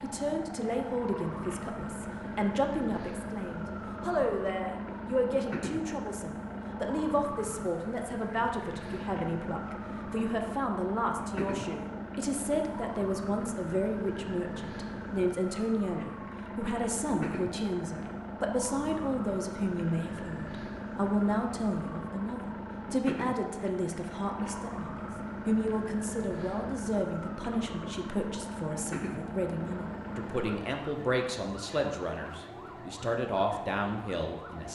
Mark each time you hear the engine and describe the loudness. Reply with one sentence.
You can hear the engine from 0.0 to 30.6 s, at a steady volume.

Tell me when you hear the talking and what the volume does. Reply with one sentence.
You can hear the talking from 0.0 to 34.7 s, at a steady volume.